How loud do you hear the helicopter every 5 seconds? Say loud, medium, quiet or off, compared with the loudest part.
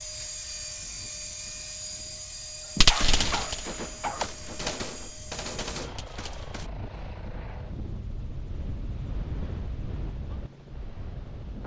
loud, medium, medium.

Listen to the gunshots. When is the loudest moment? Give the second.
3 s.